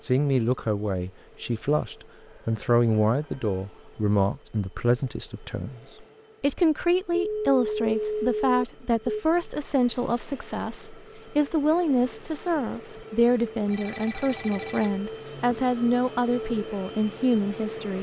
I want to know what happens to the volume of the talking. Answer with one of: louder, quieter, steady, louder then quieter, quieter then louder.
steady.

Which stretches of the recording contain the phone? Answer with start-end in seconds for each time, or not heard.
2.2-3.6, 7.1-9.2, 13.7-15.0.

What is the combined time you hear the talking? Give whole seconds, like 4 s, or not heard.
18 s.